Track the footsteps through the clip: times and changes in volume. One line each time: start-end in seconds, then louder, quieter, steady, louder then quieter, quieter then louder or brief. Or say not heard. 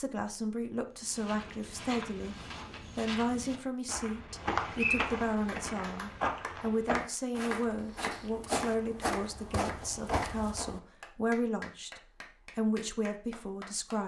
1.0-10.8 louder.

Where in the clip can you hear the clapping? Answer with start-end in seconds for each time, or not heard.
5.5-10.4, 11.0-14.0.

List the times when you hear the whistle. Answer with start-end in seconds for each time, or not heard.
4.3-5.1.